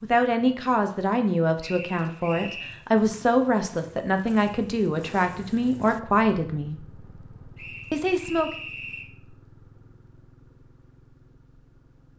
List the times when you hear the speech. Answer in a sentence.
The speech can be heard from 0.0 to 6.8 s and from 7.9 to 8.5 s.